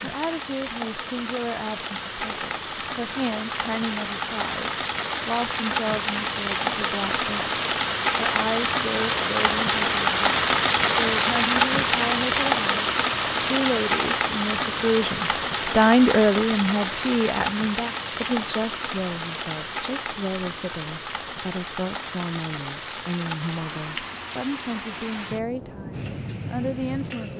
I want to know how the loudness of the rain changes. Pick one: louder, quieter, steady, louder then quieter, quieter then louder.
louder then quieter.